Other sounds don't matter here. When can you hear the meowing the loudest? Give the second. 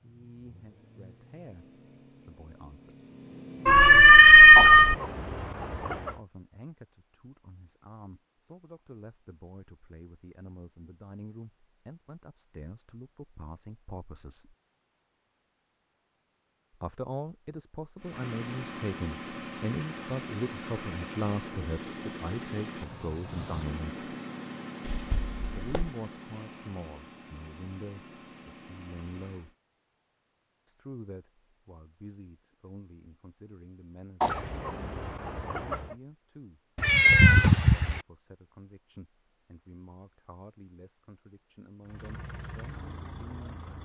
4 s.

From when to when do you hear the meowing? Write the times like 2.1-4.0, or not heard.
3.6-5.0, 24.8-25.9, 36.8-38.0.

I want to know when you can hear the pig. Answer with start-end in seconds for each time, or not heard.
not heard.